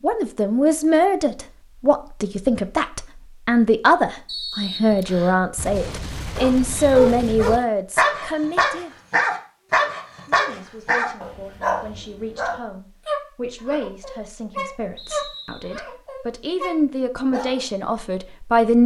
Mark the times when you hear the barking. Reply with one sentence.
You can hear the barking from 6.3 to 17.6 s.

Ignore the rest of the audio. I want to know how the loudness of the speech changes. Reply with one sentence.
The volume of the speech goes down, then up.